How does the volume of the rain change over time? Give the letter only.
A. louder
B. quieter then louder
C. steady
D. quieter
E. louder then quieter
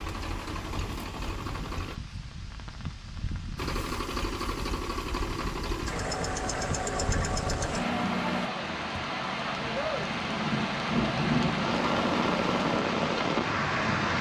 A.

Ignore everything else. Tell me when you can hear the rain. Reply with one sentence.
You can hear the rain from 0.1 to 14.1 s.